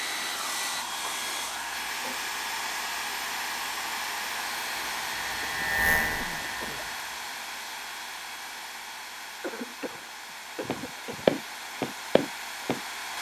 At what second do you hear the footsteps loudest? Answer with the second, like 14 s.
11 s.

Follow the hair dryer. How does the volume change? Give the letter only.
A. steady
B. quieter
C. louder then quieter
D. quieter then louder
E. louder
B.